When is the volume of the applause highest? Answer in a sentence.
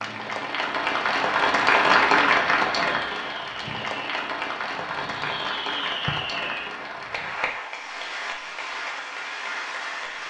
The loudest moment of the applause is at 2 seconds.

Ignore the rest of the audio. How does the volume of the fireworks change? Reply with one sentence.
The volume of the fireworks goes up.